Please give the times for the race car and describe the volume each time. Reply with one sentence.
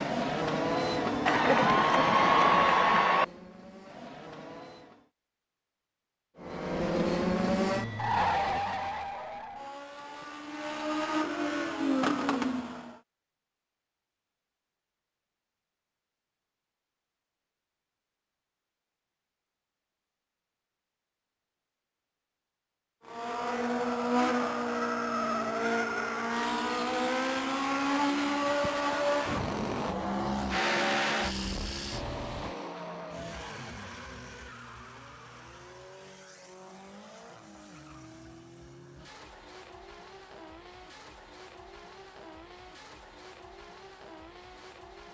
The race car can be heard from 0.0 to 5.1 s, getting quieter; from 6.3 to 13.0 s, getting quieter then louder; and from 23.1 to 45.0 s, getting quieter.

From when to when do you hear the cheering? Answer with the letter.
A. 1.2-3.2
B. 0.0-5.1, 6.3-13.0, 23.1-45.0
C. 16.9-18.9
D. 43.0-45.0
A.